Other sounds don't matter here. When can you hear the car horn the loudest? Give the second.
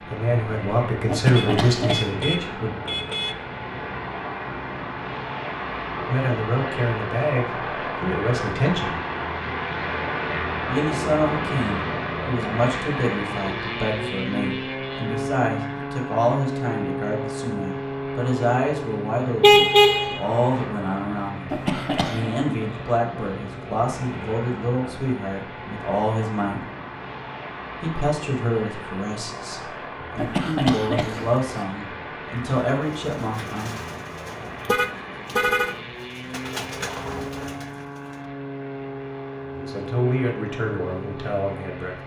20 s.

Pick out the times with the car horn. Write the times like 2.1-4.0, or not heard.
1.4-3.4, 19.4-20.2, 34.6-35.8.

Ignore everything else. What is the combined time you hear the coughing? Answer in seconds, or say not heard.
3 s.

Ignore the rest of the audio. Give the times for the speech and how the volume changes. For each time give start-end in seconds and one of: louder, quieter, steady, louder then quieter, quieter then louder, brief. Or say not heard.
0.1-2.8 brief
6.0-9.0 brief
10.7-26.6 steady
27.8-33.7 quieter then louder
39.5-42.0 brief.